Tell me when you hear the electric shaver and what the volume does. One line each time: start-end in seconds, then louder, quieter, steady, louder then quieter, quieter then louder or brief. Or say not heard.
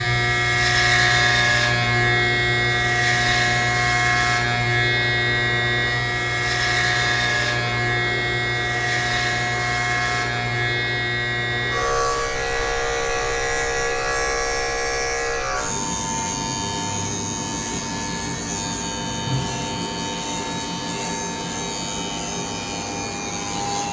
0.0-23.8 quieter.